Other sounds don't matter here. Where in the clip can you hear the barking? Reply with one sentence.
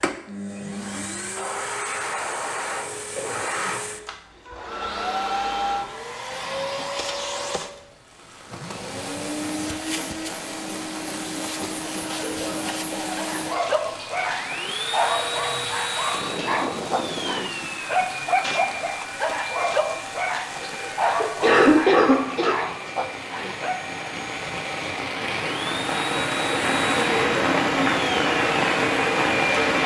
The barking can be heard from 13.2 to 23.9 s.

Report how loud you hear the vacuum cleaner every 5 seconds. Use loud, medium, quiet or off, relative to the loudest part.
loud, loud, loud, loud, medium, loud.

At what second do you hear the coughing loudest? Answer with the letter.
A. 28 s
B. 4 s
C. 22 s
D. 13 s
C.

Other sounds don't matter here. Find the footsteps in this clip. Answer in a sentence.
You can't hear the footsteps here.